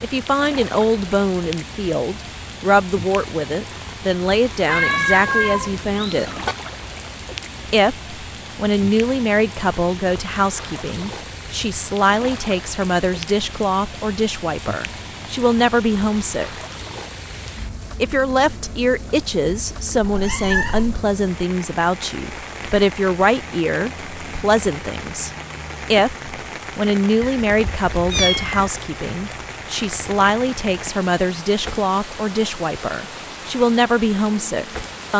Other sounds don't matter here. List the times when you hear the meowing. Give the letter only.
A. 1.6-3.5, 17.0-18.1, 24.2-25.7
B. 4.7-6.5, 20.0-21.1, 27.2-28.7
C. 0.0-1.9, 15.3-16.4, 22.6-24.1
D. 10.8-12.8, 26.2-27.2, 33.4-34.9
B.